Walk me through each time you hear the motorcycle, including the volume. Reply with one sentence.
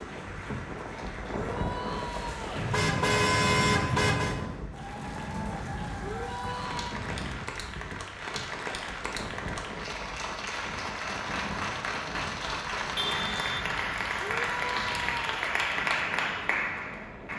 The motorcycle can't be heard in this clip.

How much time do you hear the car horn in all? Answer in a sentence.
The car horn can be heard for 3 seconds in total.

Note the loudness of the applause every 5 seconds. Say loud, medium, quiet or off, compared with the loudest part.
quiet, medium, loud, loud.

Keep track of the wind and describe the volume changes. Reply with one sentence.
The loudness of the wind goes down.